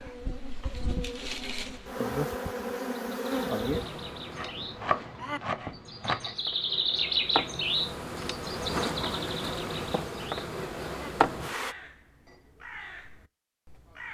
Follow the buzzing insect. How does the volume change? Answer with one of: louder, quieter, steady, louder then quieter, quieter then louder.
quieter then louder.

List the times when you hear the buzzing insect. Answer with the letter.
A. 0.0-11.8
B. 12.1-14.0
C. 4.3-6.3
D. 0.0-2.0
A.